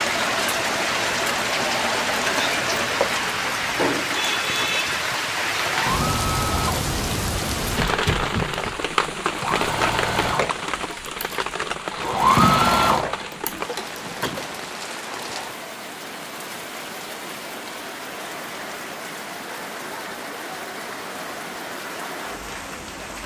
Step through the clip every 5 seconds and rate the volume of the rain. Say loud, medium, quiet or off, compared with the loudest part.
loud, loud, medium, medium, medium.